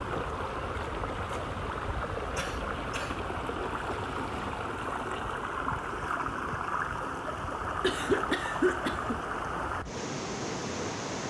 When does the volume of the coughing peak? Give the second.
8 s.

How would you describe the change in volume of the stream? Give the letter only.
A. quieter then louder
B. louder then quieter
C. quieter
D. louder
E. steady
E.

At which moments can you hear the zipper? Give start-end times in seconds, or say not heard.
3.9-4.7.